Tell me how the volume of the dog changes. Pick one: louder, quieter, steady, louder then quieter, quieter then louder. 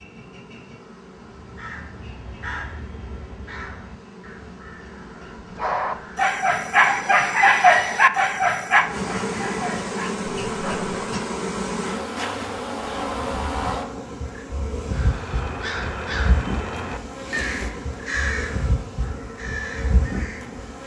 quieter.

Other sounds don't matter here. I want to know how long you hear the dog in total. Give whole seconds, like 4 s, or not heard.
5 s.